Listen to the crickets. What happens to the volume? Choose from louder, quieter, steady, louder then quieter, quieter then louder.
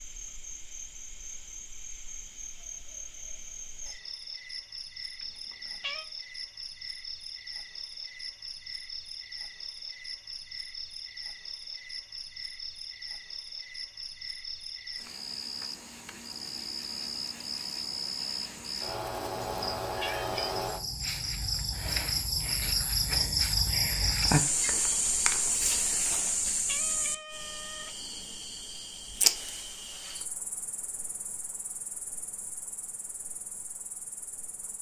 louder then quieter.